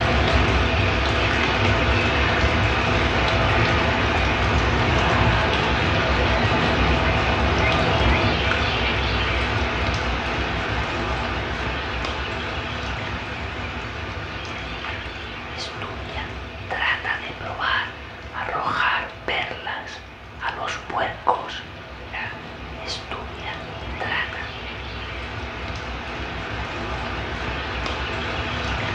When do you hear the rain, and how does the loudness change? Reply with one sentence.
You can hear the rain from 0.0 to 28.9 s, getting quieter then louder.